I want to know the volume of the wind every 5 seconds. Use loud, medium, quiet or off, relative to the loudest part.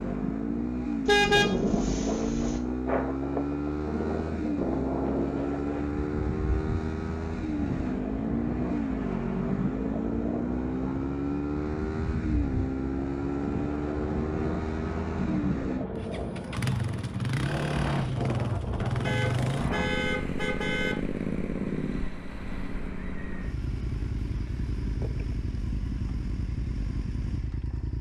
loud, loud, loud, loud, off, off.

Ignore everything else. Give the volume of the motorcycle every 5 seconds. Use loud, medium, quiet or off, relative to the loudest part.
loud, loud, loud, loud, loud, medium.